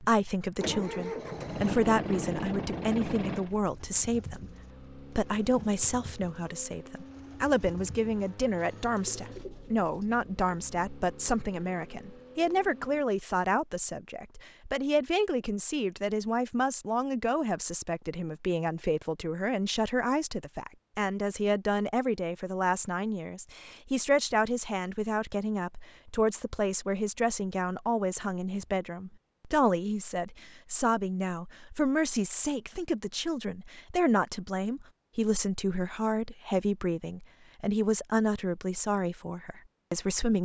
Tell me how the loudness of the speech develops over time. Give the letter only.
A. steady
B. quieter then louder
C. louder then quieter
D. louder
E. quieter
A.